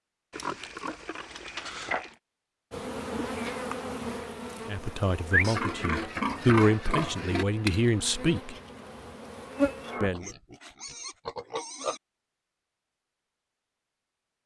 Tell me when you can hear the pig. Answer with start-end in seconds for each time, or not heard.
0.3-2.1, 5.4-7.5, 10.0-12.0.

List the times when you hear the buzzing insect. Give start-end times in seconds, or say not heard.
2.7-10.1.